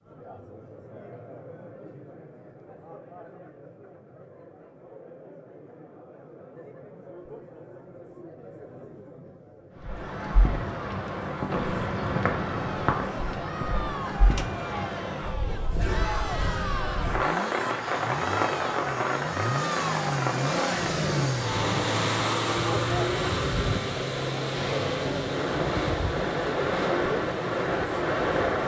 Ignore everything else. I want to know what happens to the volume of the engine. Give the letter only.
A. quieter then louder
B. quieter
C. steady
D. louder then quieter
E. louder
D.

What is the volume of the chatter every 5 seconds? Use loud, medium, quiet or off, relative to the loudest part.
quiet, quiet, medium, loud, loud, loud.